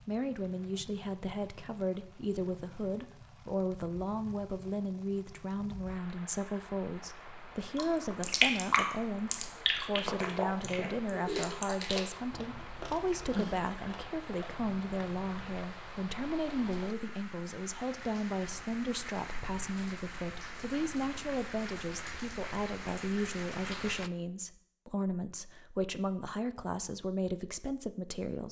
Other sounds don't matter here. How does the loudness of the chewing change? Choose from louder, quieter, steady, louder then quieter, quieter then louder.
quieter.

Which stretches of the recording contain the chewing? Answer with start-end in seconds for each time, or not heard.
7.8-15.6.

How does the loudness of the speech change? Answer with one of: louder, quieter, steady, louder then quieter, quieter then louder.
steady.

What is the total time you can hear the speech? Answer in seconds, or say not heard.
28 s.